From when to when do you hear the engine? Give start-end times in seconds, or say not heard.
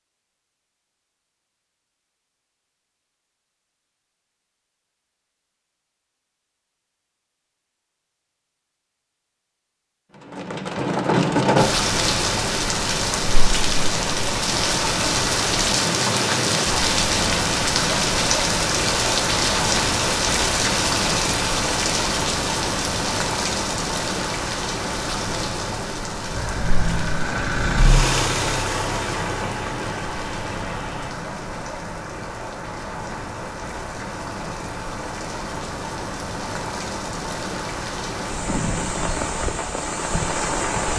26.2-31.1.